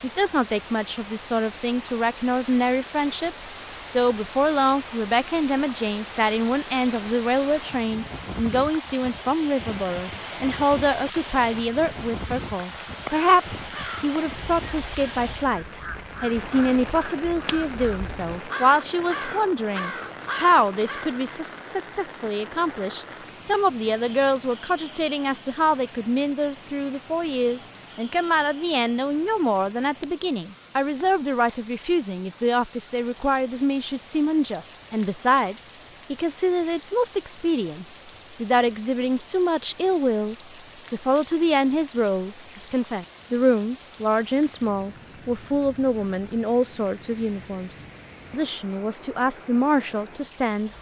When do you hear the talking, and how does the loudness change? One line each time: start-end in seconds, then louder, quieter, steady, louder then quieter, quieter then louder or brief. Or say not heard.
0.0-50.7 steady.